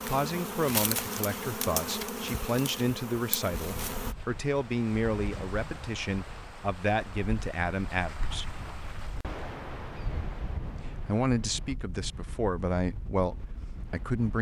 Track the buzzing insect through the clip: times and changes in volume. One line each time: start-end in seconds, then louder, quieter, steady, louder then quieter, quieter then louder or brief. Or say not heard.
0.0-4.2 quieter.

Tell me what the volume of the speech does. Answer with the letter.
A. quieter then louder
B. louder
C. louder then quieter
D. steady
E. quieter
D.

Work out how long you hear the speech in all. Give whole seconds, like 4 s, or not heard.
12 s.